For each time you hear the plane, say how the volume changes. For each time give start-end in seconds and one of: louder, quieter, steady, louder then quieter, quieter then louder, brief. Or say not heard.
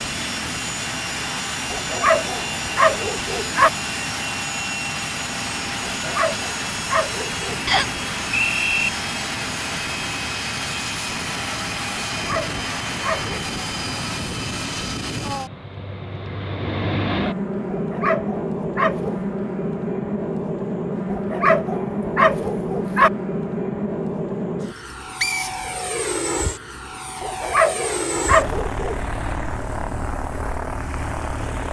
0.0-31.6 steady.